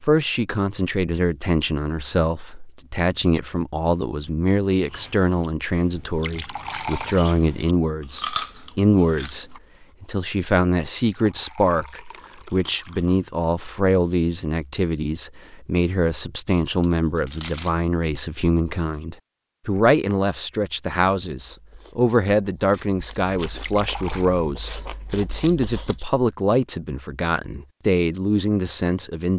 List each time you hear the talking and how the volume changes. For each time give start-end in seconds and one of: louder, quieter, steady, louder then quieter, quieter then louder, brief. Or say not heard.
0.0-29.3 steady.